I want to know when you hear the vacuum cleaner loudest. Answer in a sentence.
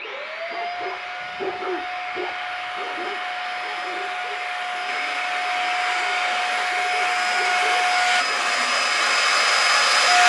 The loudest moment of the vacuum cleaner is at 10 seconds.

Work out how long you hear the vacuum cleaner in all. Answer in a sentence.
The vacuum cleaner can be heard for 10 seconds in total.